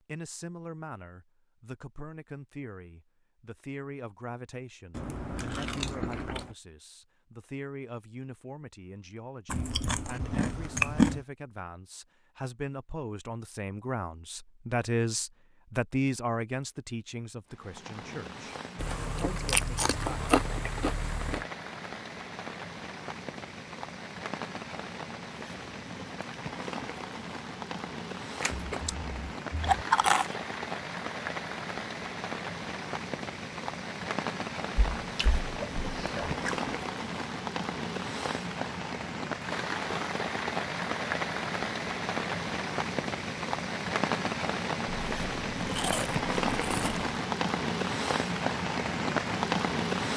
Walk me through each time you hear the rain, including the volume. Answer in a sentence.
You can hear the rain from 17.4 to 50.1 s, getting louder.